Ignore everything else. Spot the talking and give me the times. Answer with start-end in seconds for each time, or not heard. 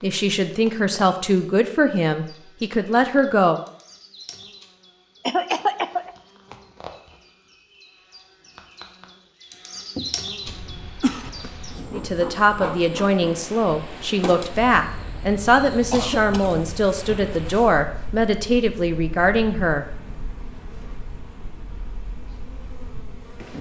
0.0-3.6, 11.9-19.9.